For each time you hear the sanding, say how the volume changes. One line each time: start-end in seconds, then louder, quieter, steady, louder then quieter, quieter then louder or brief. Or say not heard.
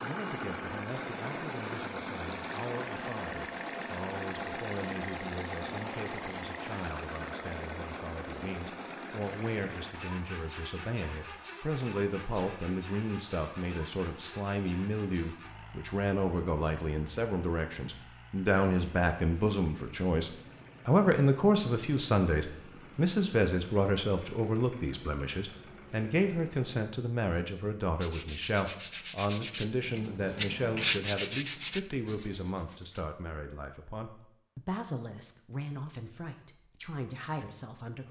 28.0-33.0 louder then quieter.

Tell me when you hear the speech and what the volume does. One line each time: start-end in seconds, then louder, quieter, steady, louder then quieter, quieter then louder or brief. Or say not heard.
0.0-38.0 louder then quieter.